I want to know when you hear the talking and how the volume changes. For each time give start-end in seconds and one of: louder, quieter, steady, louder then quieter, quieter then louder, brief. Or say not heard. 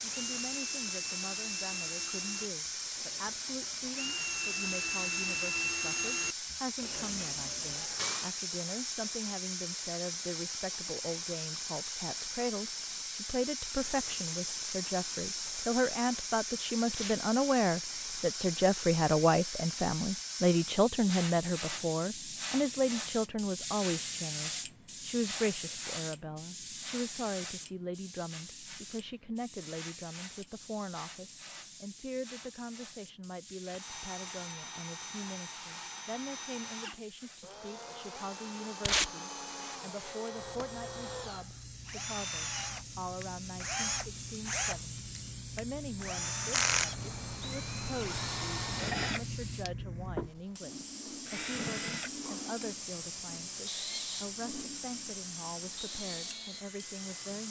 0.0-57.4 louder then quieter.